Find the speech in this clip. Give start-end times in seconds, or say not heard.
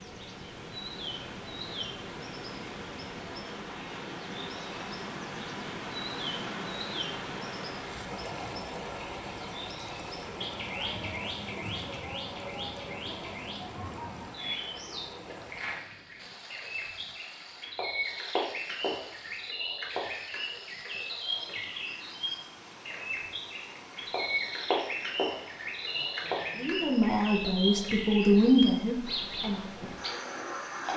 26.6-29.6.